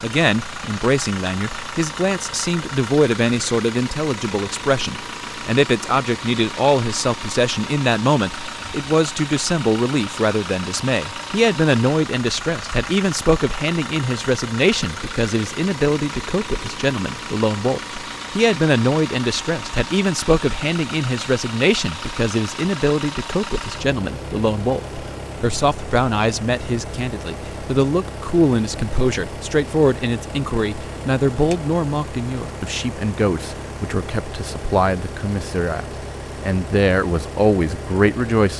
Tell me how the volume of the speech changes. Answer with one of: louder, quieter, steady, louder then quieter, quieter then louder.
steady.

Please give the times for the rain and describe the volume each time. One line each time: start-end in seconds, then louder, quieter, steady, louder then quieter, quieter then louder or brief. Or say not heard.
not heard.